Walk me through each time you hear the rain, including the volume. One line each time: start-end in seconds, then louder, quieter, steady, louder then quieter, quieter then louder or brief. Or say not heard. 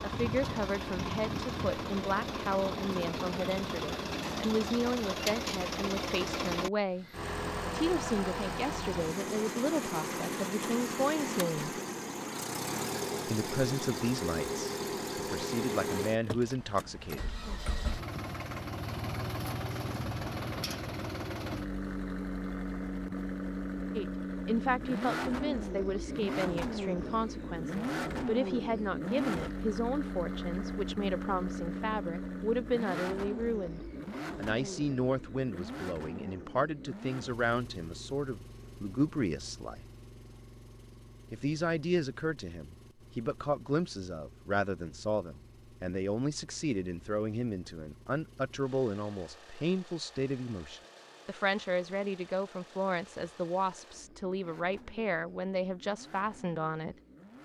not heard.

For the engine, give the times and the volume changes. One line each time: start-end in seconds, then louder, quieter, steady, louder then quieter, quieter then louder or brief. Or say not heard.
0.0-57.3 quieter.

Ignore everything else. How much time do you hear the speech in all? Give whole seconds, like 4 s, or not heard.
47 s.